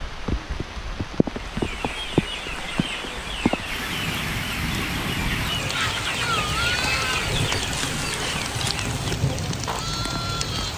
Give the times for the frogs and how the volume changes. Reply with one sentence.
The frogs can't be heard in this clip.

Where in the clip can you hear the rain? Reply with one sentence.
The rain can be heard from 0.0 to 10.7 s.